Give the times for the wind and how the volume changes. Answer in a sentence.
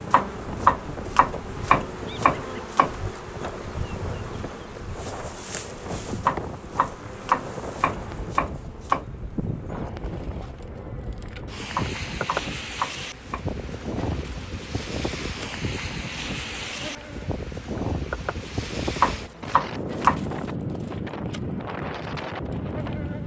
The wind can be heard from 0.0 to 23.2 s, getting louder.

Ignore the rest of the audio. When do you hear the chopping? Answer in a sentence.
The chopping can be heard from 0.1 to 3.0 s, from 6.2 to 9.1 s, from 11.8 to 13.4 s and from 19.0 to 20.4 s.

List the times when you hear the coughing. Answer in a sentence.
The coughing can't be heard in this clip.